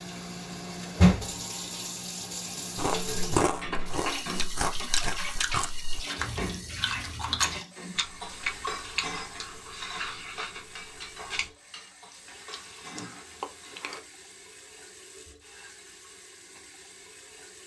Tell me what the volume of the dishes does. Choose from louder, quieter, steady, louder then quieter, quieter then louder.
quieter.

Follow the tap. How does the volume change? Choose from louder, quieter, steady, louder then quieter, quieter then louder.
quieter.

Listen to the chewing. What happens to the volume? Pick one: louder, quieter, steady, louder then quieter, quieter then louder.
quieter.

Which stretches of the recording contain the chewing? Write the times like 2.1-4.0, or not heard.
2.8-14.0.